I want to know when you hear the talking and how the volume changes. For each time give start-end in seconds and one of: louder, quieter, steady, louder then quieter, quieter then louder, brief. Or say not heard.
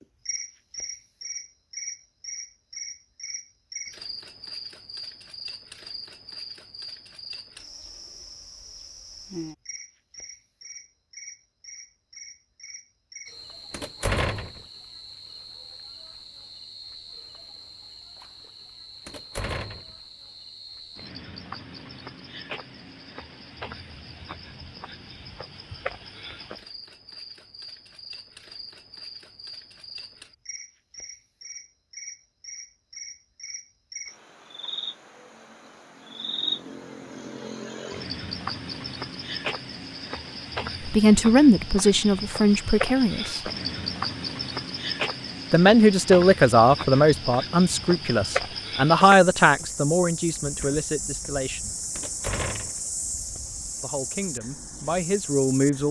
40.9-43.4 brief
45.5-51.8 quieter
53.8-55.8 brief.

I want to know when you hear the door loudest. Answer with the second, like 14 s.
14 s.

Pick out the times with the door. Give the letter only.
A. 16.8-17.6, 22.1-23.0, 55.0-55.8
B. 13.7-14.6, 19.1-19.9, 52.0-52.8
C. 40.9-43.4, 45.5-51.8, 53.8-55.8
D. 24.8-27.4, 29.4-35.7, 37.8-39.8
B.